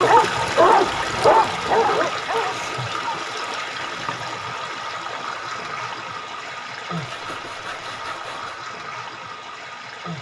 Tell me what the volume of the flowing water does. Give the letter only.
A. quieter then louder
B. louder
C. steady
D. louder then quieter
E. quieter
E.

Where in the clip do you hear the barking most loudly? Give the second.
1 s.